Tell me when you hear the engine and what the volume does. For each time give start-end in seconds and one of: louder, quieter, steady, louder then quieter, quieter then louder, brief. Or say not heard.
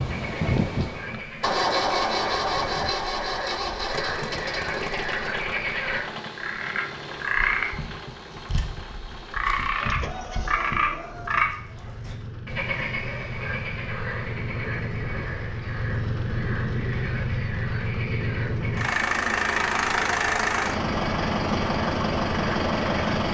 0.0-23.2 quieter then louder.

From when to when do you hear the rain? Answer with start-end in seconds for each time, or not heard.
not heard.